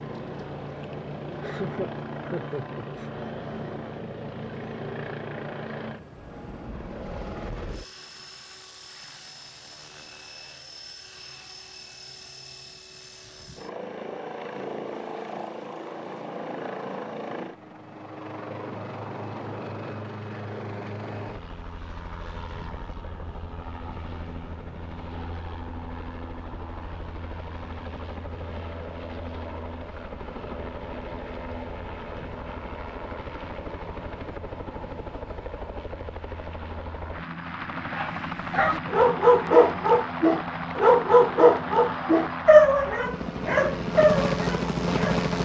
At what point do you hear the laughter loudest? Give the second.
2 s.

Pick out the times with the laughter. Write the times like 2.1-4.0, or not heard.
0.8-3.1.